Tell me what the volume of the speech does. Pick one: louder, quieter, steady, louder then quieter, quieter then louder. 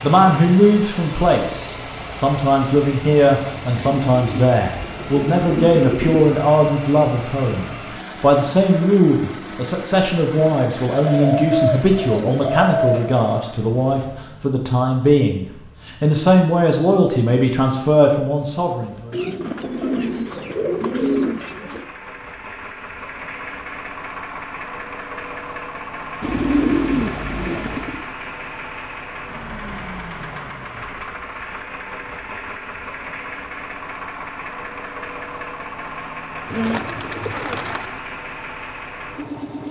steady.